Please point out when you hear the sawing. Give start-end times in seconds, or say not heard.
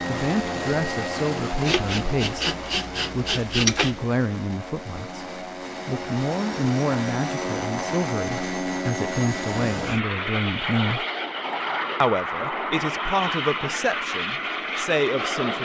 1.6-4.0.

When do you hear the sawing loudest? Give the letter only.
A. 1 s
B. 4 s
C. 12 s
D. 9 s
B.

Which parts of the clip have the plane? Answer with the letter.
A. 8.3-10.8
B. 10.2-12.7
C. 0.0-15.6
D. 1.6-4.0
C.